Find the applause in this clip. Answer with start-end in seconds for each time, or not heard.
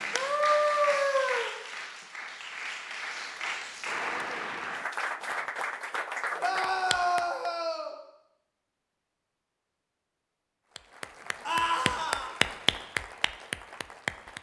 0.0-7.5, 10.8-14.3.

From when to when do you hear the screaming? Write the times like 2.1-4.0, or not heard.
0.1-1.5, 6.3-8.0, 11.4-12.3.